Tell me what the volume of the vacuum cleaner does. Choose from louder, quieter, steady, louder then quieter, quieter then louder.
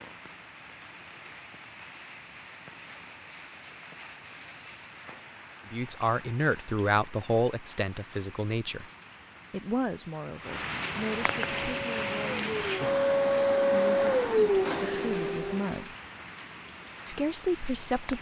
louder then quieter.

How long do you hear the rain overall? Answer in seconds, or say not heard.
18 s.